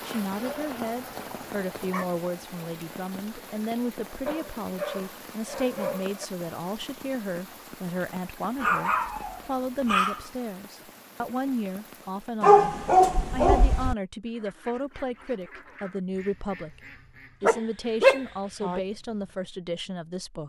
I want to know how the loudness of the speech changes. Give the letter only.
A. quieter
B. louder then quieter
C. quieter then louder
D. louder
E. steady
E.